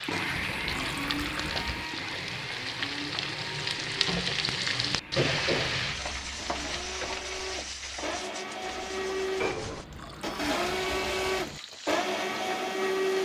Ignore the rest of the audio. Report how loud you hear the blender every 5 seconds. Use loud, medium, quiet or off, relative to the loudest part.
medium, medium, loud.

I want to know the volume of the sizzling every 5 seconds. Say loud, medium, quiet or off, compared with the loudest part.
loud, loud, medium.